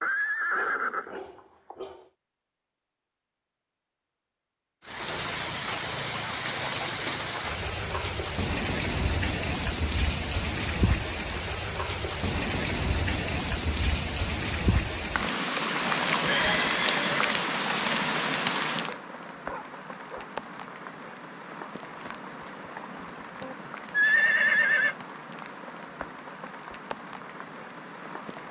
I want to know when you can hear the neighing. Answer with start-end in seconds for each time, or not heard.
0.0-1.8, 16.0-17.4, 23.4-24.9.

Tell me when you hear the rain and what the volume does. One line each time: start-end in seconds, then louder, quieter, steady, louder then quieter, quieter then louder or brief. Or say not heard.
4.8-28.4 quieter.